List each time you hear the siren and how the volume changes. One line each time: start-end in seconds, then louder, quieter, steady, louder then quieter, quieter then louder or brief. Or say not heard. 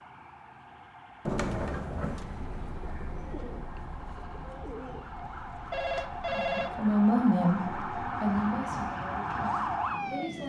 0.0-10.4 louder.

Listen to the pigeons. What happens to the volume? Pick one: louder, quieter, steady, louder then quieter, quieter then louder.
quieter.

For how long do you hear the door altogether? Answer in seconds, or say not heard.
2 s.